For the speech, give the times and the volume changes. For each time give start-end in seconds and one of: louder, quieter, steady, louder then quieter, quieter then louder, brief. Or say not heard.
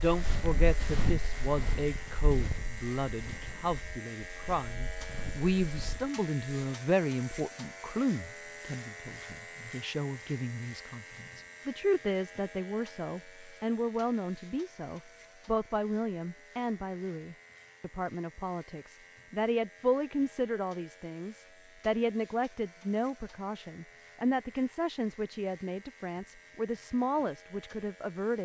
0.0-28.4 steady.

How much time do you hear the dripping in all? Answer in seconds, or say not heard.
not heard.